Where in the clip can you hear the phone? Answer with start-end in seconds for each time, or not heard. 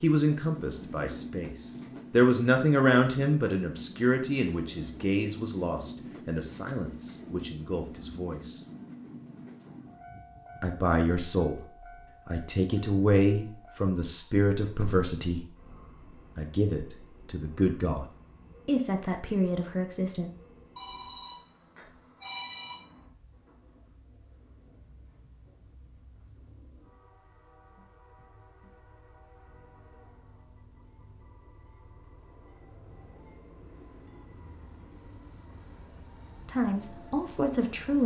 20.8-22.8.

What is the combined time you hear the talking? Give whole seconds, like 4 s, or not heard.
18 s.